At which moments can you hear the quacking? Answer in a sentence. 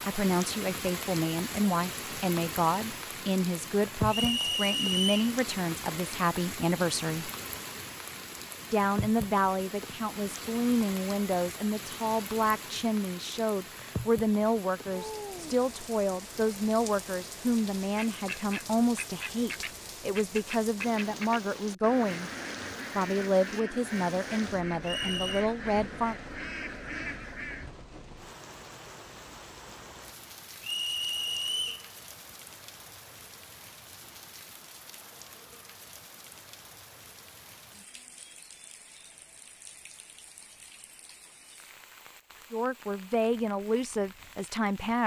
You can hear the quacking from 17.9 to 27.7 s.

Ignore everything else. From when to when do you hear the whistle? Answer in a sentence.
You can hear the whistle from 4.1 to 5.3 s, from 24.8 to 25.4 s and from 30.6 to 31.9 s.